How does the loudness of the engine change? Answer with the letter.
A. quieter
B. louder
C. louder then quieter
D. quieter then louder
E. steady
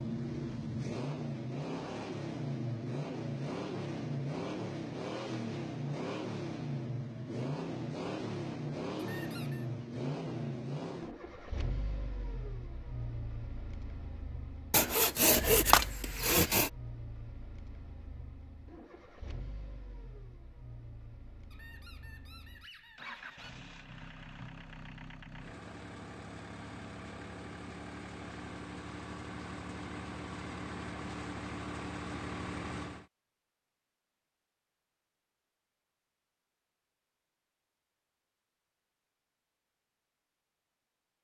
D.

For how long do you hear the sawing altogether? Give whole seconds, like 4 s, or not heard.
2 s.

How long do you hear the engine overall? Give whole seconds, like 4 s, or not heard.
33 s.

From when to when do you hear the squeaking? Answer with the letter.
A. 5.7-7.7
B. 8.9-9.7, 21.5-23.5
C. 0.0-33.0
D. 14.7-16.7
B.